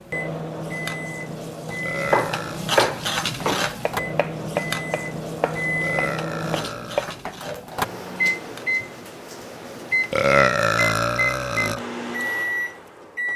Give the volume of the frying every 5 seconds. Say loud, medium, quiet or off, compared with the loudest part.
loud, medium, off.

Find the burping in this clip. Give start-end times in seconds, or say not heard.
1.8-2.6, 5.8-7.1, 10.1-11.8.